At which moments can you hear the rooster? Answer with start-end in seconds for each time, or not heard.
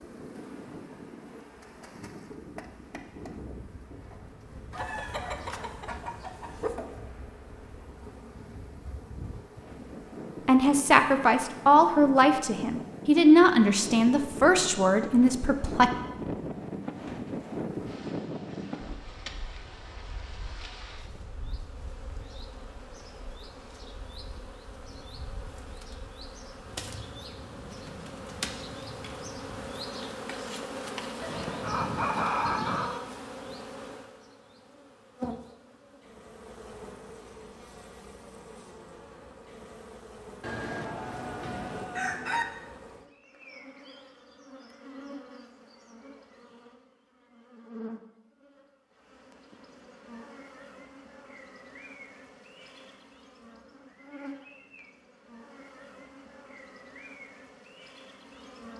4.7-6.7, 31.2-33.0, 40.4-42.5.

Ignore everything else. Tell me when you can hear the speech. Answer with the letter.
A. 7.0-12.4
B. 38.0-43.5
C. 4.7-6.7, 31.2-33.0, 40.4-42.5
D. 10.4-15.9
D.